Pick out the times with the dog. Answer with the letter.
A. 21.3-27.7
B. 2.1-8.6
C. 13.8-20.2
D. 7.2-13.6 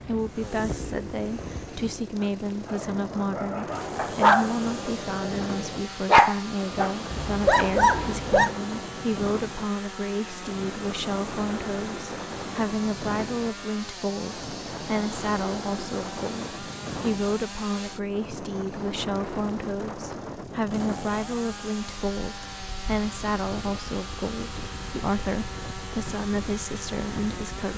B.